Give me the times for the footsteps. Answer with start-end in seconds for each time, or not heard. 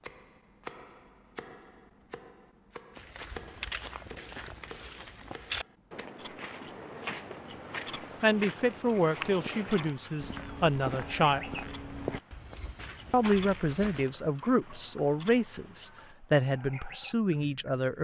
3.0-14.1.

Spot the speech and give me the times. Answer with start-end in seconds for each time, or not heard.
8.2-11.4, 13.1-17.9.